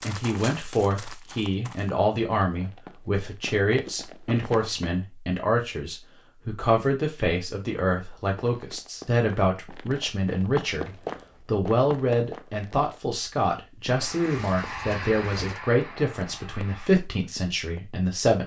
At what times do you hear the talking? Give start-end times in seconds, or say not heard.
0.0-18.4.